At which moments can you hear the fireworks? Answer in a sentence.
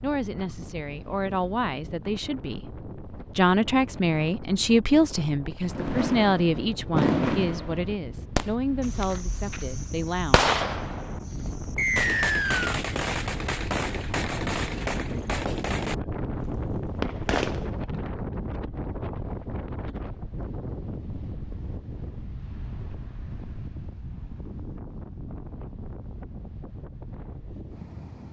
You can hear the fireworks from 5.7 to 17.8 s.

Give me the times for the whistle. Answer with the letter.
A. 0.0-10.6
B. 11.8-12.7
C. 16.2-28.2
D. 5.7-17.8
B.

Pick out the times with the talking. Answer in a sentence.
The talking can be heard from 0.0 to 10.6 s.